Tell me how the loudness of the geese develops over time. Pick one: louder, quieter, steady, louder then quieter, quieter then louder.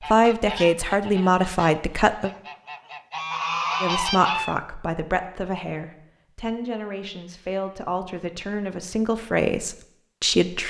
quieter then louder.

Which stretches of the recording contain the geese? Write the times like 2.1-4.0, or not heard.
0.0-4.6.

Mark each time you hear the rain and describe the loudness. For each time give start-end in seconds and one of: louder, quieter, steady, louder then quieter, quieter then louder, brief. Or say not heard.
not heard.